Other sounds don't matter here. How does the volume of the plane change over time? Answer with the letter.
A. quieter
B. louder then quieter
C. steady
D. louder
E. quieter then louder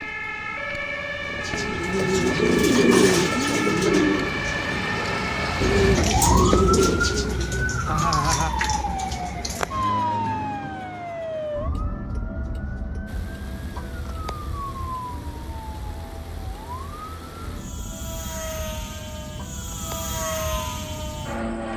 D.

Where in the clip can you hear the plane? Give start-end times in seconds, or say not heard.
13.1-21.7.